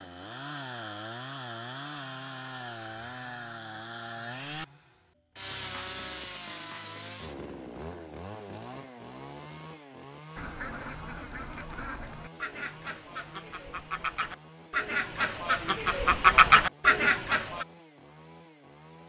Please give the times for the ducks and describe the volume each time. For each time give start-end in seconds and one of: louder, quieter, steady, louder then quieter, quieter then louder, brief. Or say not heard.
10.3-17.6 louder.